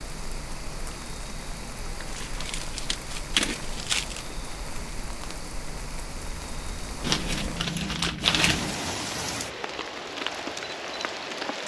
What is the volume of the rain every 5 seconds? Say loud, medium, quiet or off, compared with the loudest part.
medium, loud, loud.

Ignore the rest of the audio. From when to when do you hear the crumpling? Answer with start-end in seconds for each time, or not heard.
2.0-4.2, 7.0-8.8.